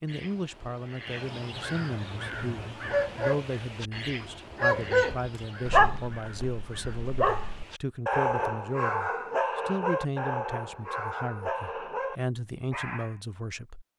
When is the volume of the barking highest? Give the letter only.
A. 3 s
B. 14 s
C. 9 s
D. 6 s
D.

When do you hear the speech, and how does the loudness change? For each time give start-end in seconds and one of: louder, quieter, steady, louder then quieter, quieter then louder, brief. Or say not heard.
0.0-13.8 steady.